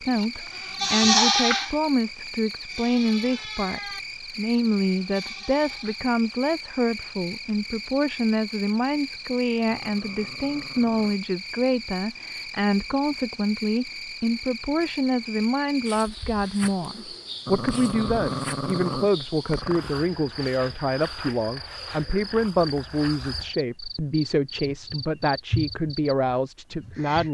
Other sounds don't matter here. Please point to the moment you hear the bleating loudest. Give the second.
1 s.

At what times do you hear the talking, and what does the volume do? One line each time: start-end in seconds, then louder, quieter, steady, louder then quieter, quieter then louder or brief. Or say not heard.
0.0-27.2 steady.